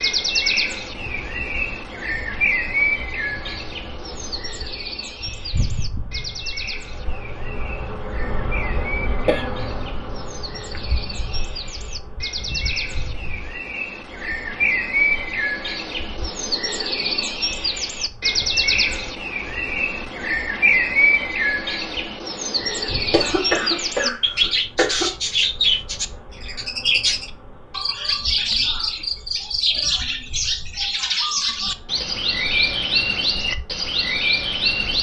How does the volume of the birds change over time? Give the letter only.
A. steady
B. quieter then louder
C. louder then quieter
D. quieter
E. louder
B.